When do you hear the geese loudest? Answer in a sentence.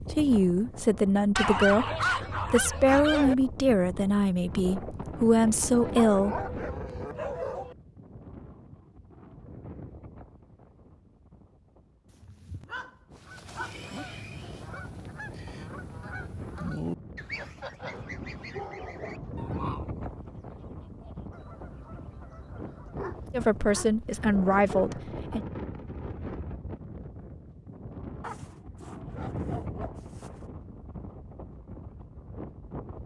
The volume of the geese peaks at 17 seconds.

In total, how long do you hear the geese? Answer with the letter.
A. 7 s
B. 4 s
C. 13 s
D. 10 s
D.